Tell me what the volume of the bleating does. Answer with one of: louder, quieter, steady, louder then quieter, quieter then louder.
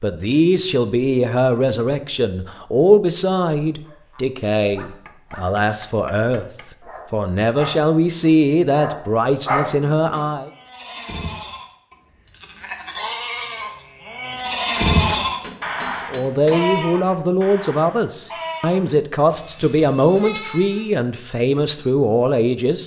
louder then quieter.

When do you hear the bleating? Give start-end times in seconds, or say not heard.
10.4-20.9.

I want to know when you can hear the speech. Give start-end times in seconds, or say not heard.
0.0-6.5, 7.1-10.5, 15.9-22.8.